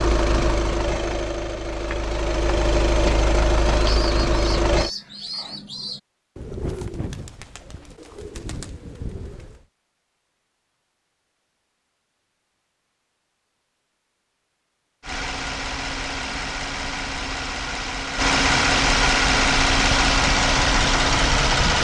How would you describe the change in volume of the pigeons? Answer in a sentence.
The volume of the pigeons goes down, then up.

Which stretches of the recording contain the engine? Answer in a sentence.
The engine can be heard from 0.0 to 4.9 s and from 15.0 to 21.7 s.